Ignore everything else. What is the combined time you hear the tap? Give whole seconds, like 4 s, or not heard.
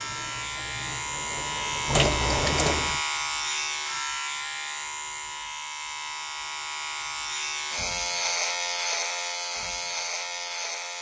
3 s.